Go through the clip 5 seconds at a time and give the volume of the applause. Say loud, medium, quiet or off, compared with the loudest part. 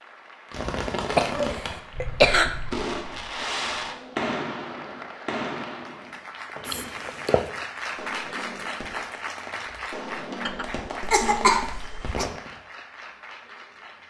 medium, loud, medium.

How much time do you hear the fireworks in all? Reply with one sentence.
You can hear the fireworks for 12 seconds altogether.